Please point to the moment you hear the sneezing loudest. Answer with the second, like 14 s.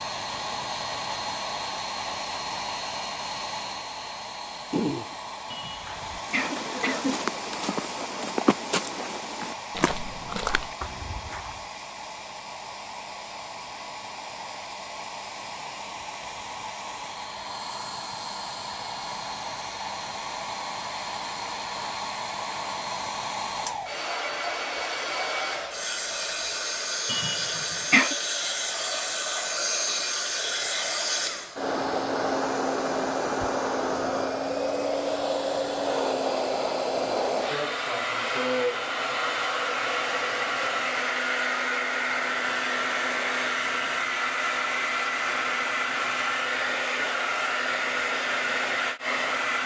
28 s.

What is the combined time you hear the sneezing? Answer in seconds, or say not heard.
3 s.